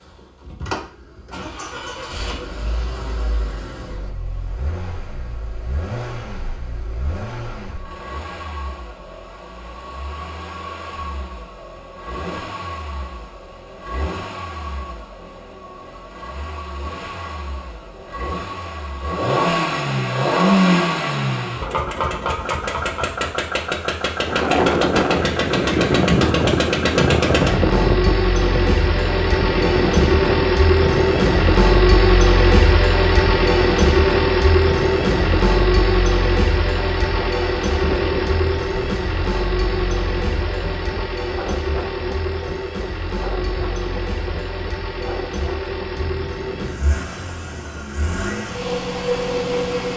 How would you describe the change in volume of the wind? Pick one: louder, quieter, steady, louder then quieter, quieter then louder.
quieter.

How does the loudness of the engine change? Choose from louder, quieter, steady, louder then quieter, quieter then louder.
louder then quieter.